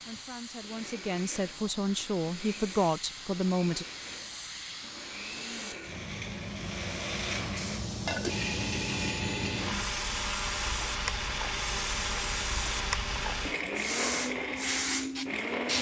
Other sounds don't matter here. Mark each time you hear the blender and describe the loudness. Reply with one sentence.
The blender can be heard from 0.0 to 15.7 s, getting louder.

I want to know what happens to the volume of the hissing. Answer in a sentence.
The loudness of the hissing goes up.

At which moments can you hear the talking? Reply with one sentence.
You can hear the talking from 0.1 to 3.9 s.